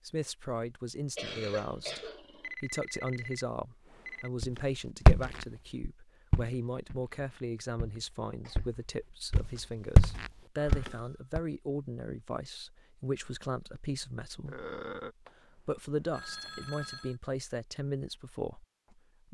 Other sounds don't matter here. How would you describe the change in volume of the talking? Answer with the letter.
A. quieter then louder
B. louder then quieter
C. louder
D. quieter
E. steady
E.